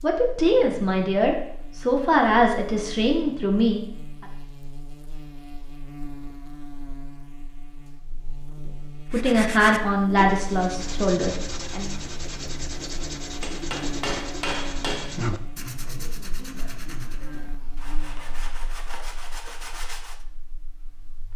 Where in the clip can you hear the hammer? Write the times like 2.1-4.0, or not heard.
13.4-15.2.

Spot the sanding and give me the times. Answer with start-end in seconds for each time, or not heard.
9.1-20.2.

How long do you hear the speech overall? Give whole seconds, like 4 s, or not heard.
7 s.